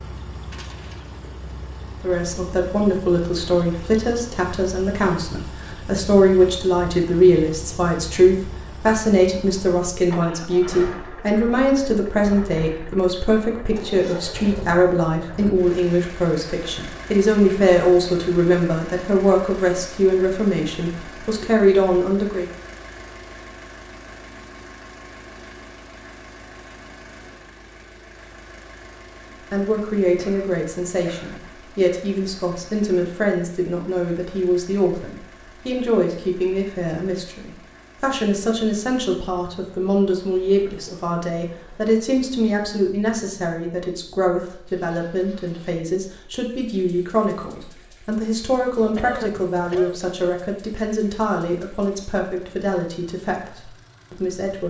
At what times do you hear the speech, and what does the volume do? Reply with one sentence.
The speech can be heard from 2.0 to 22.4 s, at a steady volume; and from 29.5 to 54.6 s, at a steady volume.